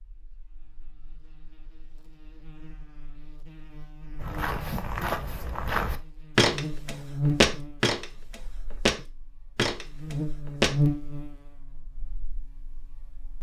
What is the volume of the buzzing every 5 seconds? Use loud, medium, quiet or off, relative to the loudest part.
quiet, loud, loud.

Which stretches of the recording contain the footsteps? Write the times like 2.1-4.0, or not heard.
4.2-10.8.